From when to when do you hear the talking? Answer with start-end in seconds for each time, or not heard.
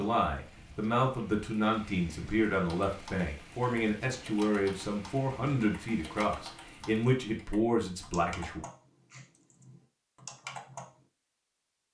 0.0-8.6.